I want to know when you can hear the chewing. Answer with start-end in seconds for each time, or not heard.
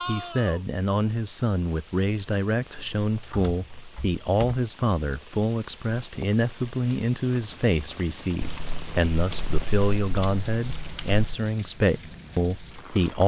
not heard.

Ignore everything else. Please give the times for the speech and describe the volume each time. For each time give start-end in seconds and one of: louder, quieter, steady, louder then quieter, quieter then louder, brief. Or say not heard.
0.1-13.2 steady.